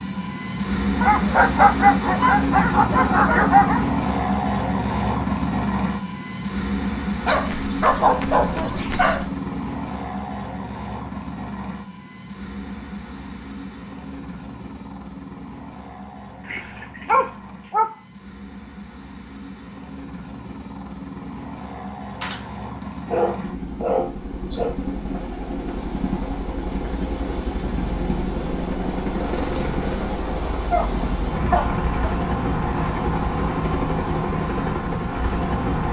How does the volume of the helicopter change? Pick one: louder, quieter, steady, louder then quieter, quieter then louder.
quieter then louder.